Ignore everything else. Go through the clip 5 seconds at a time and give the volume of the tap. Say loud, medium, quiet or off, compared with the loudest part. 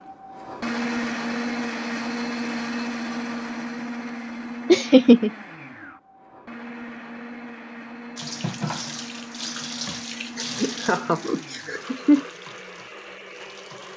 off, loud, medium.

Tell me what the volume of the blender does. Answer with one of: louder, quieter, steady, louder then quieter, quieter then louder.
quieter.